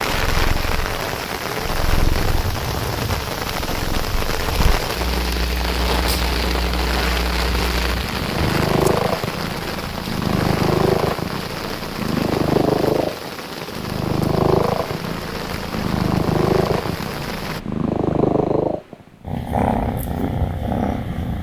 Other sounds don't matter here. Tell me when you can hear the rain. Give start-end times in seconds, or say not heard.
0.0-17.6.